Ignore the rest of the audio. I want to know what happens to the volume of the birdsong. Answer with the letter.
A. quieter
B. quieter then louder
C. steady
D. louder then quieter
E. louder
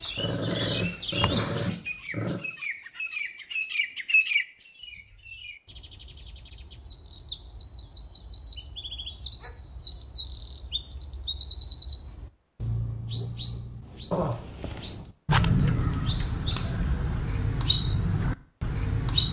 E.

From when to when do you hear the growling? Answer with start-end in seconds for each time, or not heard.
0.1-2.4, 14.1-15.1.